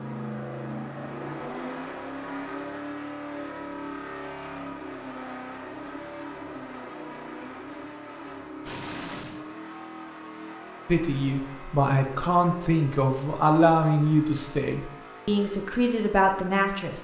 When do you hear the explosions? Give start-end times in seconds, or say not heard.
8.7-9.4.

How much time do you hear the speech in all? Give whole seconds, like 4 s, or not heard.
6 s.